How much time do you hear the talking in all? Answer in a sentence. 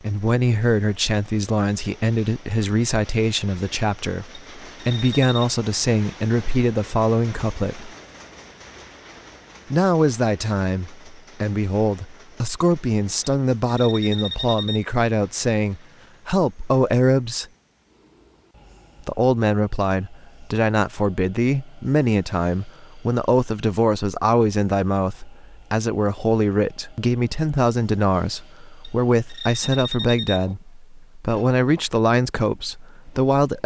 You can hear the talking for 30 seconds altogether.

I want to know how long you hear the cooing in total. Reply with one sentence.
The cooing can't be heard in this clip.